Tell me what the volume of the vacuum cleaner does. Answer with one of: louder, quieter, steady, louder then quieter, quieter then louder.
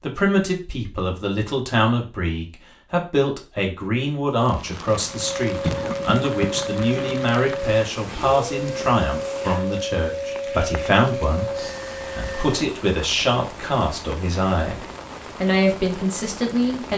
steady.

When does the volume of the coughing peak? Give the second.
6 s.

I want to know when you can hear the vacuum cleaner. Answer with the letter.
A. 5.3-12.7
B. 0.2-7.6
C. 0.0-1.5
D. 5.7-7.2
A.